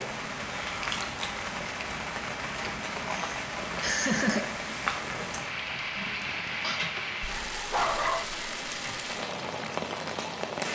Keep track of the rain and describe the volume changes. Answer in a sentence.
The loudness of the rain stays about the same.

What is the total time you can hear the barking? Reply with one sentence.
The barking can be heard for 2 seconds in total.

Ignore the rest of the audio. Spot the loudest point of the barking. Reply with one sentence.
The volume of the barking peaks at 8 seconds.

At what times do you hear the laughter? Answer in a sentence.
The laughter can be heard from 3.0 to 4.7 s.